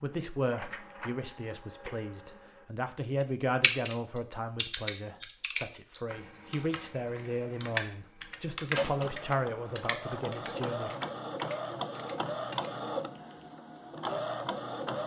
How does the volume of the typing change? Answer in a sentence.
The loudness of the typing goes down.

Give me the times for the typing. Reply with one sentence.
The typing can be heard from 3.2 to 13.4 s.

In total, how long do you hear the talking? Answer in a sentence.
You can hear the talking for 11 seconds altogether.